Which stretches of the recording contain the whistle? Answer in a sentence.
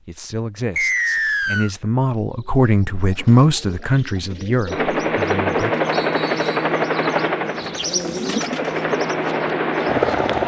You can hear the whistle from 0.8 to 1.7 s and from 5.9 to 6.8 s.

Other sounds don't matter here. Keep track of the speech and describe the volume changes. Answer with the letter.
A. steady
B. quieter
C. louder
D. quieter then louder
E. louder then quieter
E.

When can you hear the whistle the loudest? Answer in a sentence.
The volume of the whistle peaks at 1 second.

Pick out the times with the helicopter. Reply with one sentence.
The helicopter can be heard from 4.7 to 10.4 s.